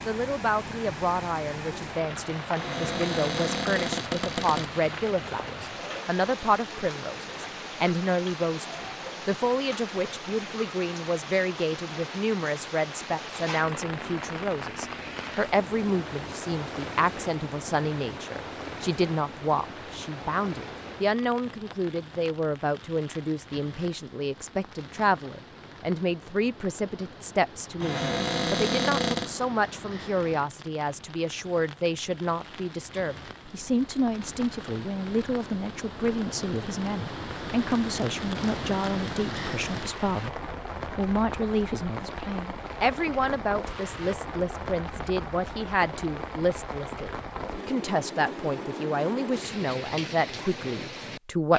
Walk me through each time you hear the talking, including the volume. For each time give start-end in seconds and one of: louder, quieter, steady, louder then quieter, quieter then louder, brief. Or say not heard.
0.1-51.5 steady.